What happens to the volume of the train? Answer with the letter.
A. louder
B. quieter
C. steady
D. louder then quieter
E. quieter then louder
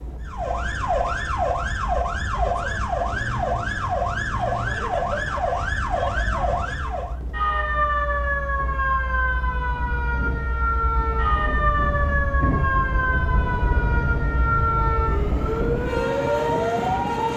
A.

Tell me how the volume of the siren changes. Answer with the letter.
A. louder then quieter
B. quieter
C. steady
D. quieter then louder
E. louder
C.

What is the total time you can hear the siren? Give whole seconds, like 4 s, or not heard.
17 s.